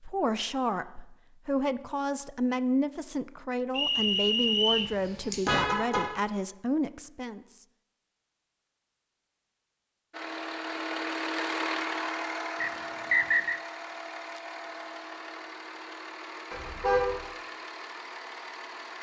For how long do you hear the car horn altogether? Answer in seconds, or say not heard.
2 s.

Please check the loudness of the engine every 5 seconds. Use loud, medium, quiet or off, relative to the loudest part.
off, off, loud, medium.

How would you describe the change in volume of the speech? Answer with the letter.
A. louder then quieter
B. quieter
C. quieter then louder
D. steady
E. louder
D.